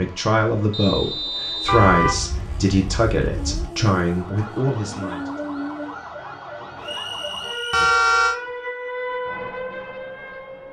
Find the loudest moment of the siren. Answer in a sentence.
The volume of the siren peaks at 9 seconds.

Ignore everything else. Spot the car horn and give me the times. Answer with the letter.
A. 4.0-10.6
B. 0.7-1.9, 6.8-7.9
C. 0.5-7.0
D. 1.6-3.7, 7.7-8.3
D.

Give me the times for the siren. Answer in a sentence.
The siren can be heard from 4.0 to 10.6 s.